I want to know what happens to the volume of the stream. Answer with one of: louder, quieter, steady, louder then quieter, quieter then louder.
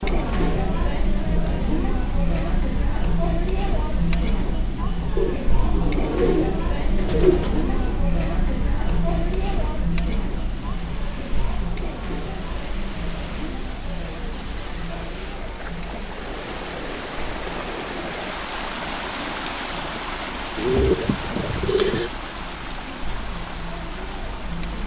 louder.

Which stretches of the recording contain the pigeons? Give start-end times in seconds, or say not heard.
5.2-8.0, 20.6-22.1.